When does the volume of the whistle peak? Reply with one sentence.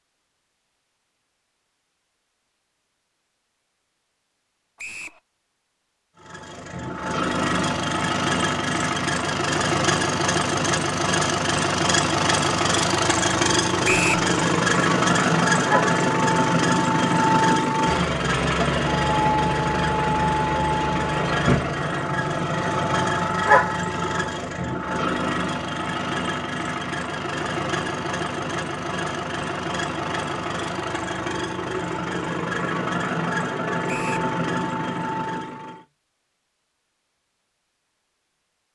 The loudest moment of the whistle is at 14 seconds.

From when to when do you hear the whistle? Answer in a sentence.
You can hear the whistle from 4.8 to 5.2 s, from 13.8 to 14.2 s and from 33.9 to 34.3 s.